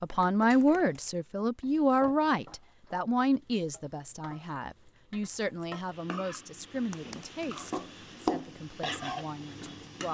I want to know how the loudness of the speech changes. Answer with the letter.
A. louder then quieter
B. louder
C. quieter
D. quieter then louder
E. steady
C.